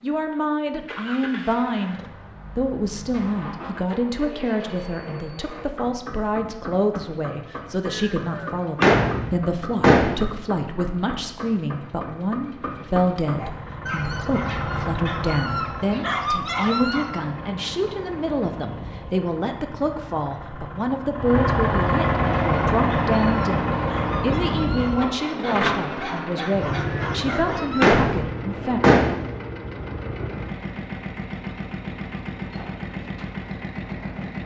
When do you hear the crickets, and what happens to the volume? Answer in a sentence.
The crickets can't be heard in this clip.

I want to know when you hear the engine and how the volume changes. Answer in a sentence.
You can hear the engine from 0.0 to 34.4 s, getting louder then quieter.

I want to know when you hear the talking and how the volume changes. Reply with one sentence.
You can hear the talking from 0.0 to 28.8 s, at a steady volume.